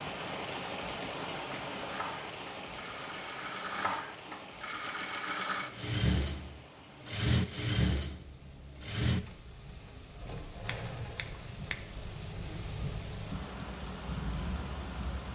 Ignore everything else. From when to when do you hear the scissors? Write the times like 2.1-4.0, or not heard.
0.5-1.6, 10.7-11.8.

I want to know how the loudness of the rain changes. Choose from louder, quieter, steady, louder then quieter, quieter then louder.
quieter then louder.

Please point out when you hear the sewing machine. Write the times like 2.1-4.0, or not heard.
0.1-11.6.